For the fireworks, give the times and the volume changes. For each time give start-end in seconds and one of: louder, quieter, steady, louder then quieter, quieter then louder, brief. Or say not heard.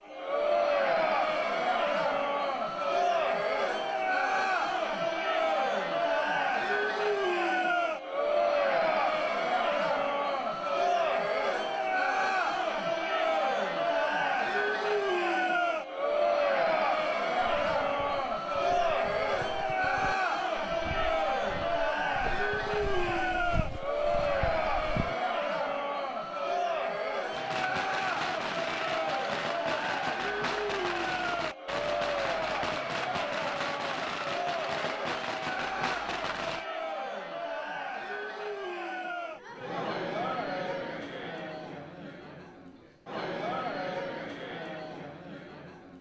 27.3-36.6 steady.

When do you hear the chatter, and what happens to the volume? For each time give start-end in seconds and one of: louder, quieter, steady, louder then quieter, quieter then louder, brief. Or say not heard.
0.0-45.9 quieter.